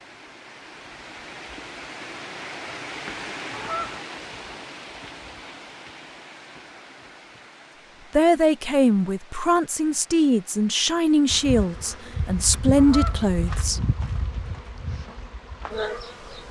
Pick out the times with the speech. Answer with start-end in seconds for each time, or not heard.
8.1-13.8.